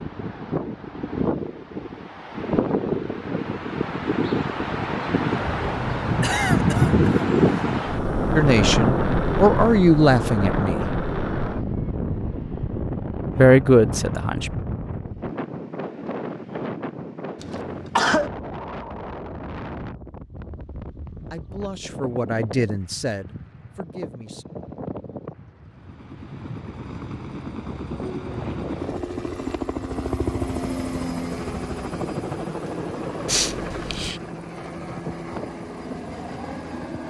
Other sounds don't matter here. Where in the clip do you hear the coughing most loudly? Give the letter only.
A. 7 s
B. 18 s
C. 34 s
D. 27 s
B.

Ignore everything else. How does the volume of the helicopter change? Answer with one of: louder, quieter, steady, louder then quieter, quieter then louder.
louder then quieter.